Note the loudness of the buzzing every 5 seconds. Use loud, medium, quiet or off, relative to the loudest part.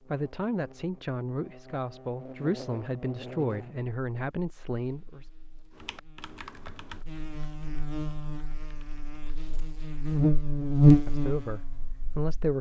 quiet, quiet, loud.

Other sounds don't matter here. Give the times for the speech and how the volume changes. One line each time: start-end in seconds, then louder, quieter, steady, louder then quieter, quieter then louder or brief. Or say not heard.
0.1-5.2 steady
11.1-12.5 brief.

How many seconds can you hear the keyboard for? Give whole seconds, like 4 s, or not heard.
4 s.